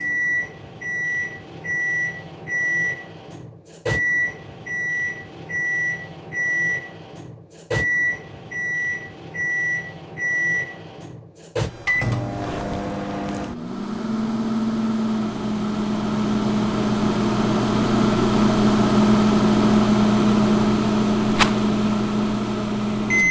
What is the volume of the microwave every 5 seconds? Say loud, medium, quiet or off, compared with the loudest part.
medium, medium, medium, loud, loud.